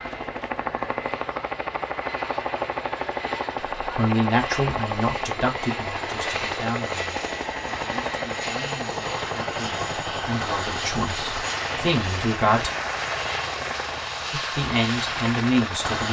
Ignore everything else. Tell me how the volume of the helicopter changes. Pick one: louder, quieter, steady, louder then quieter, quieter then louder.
steady.